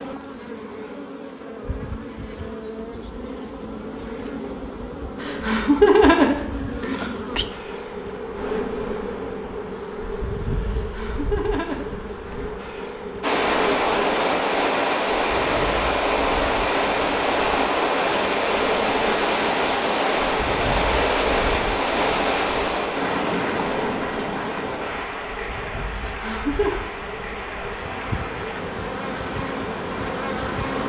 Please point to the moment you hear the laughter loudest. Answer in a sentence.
The loudest moment of the laughter is at 6 seconds.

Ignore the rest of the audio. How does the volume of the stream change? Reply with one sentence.
The loudness of the stream goes down.